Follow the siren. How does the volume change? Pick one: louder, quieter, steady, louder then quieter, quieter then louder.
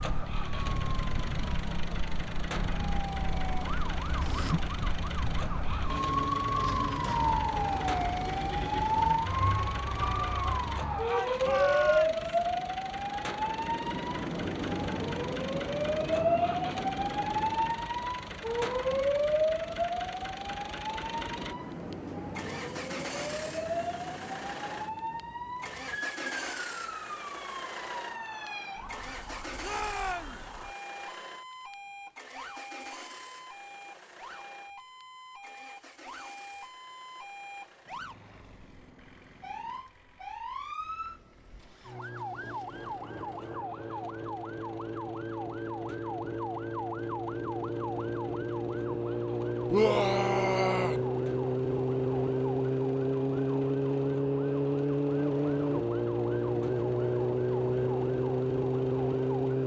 quieter then louder.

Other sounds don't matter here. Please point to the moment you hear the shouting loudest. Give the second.
50 s.